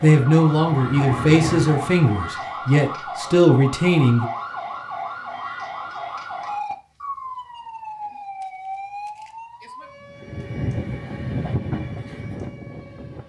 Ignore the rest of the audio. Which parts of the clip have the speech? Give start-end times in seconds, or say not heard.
0.0-4.2.